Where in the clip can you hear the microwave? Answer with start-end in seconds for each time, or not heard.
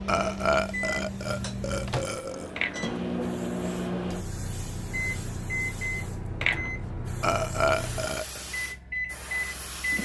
0.0-10.0.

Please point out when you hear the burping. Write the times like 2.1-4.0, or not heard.
0.1-2.5, 7.2-8.4.